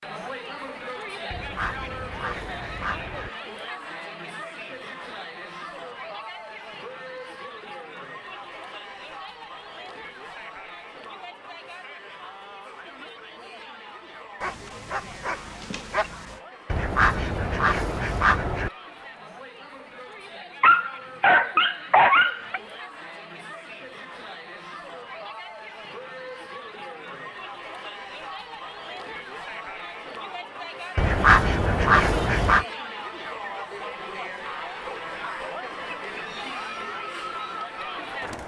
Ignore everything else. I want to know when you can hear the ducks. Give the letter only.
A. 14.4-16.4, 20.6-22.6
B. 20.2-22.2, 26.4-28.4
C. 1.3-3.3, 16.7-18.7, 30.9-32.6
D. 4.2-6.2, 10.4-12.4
C.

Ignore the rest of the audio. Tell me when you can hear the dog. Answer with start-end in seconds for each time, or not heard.
14.4-16.4, 20.6-22.6.